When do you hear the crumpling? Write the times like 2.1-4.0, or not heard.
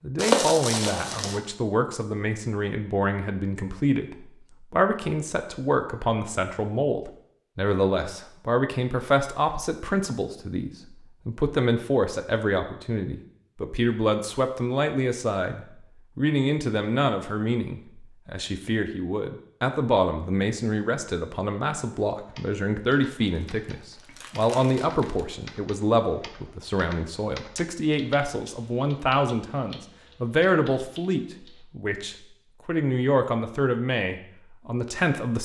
0.1-1.4, 23.2-25.4.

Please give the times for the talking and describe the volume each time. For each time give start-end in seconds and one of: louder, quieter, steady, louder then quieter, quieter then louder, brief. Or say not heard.
0.0-35.4 steady.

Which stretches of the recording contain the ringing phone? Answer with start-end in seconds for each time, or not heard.
not heard.